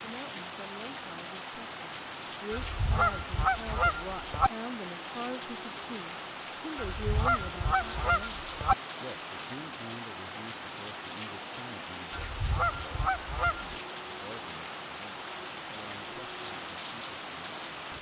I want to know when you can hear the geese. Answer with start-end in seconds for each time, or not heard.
2.5-4.5, 6.8-8.8, 12.1-13.7.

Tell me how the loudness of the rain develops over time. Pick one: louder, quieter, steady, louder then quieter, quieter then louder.
steady.